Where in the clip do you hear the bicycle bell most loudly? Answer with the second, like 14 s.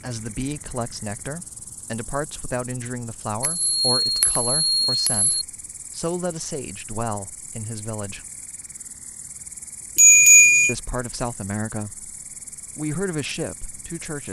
10 s.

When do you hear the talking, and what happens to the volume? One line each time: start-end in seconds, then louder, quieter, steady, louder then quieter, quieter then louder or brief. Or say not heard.
0.0-8.2 steady
10.7-12.1 brief
12.8-14.2 brief.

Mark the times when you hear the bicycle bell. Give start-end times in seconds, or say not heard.
3.4-5.3, 9.9-10.8.